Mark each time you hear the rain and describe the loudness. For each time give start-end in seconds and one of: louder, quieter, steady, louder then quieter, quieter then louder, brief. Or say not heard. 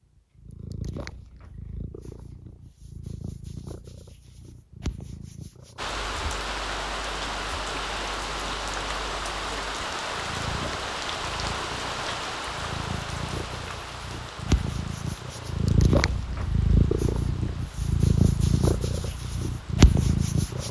5.8-20.6 quieter.